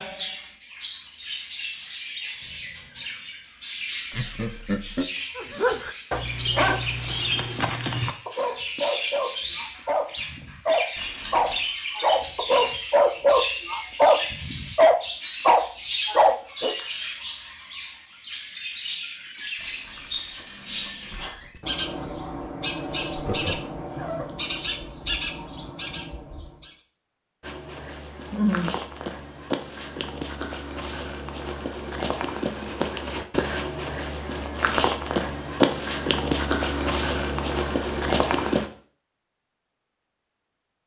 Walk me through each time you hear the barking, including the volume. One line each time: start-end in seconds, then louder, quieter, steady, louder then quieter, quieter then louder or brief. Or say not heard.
5.3-16.8 louder.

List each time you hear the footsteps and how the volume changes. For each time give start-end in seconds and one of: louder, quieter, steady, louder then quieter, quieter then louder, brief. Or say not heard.
27.4-38.7 louder.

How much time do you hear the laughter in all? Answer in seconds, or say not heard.
2 s.